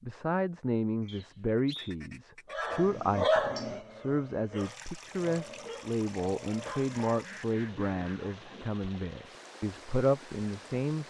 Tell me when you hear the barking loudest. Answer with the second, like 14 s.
3 s.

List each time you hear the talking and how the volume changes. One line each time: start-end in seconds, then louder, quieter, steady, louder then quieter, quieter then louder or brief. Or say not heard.
0.0-11.0 steady.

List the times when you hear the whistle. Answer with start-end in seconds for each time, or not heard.
1.1-1.9.